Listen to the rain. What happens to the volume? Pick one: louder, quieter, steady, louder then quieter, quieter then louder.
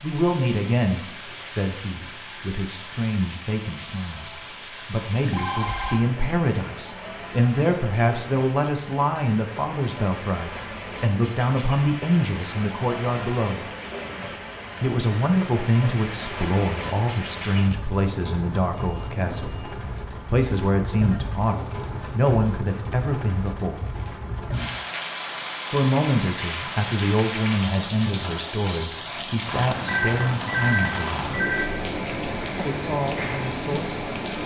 louder.